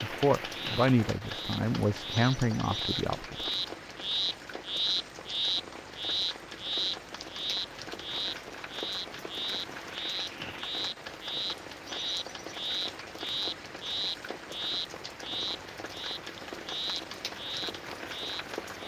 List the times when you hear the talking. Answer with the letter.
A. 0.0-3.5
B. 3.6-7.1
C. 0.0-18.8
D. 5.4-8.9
A.